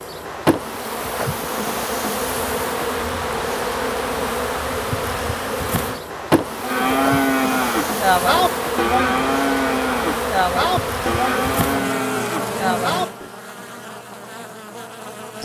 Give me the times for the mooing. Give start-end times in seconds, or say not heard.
6.6-13.3.